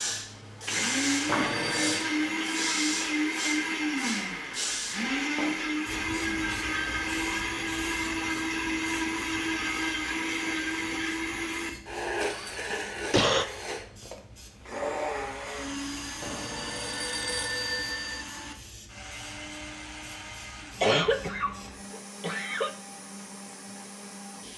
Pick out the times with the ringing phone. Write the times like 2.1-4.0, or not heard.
1.2-2.1, 16.2-18.2.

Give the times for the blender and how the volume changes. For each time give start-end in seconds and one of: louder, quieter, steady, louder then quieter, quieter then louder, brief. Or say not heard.
0.0-24.5 quieter.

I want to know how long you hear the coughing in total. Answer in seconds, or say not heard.
4 s.